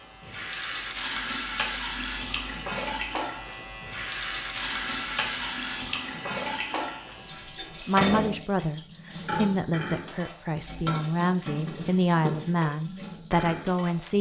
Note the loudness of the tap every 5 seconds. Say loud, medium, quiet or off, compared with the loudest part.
loud, loud, medium.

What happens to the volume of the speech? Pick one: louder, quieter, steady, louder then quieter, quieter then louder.
steady.